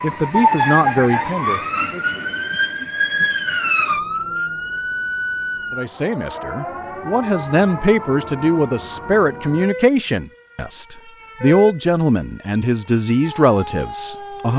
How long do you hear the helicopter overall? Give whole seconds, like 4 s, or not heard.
not heard.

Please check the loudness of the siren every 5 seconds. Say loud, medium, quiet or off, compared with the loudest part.
loud, medium, quiet.